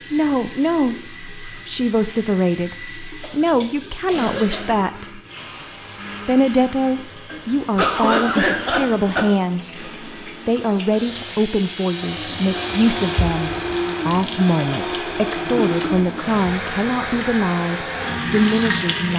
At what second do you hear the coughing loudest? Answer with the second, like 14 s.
8 s.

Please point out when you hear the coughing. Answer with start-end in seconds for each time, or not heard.
3.2-4.8, 7.2-9.2, 15.6-16.2.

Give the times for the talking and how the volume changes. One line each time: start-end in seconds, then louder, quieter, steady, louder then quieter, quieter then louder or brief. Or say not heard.
0.1-5.2 steady
6.2-19.1 steady.